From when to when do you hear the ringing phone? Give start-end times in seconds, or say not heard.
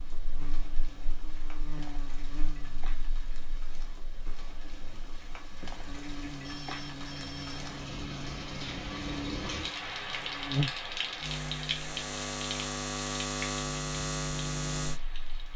6.4-7.6.